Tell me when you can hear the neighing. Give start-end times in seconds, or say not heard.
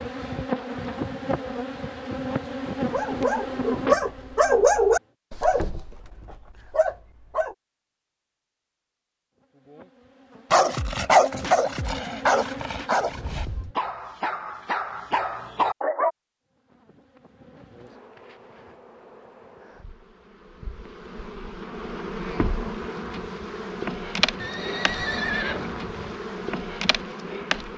24.4-26.2.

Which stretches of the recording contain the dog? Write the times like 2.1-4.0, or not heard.
2.9-7.5, 10.5-16.1.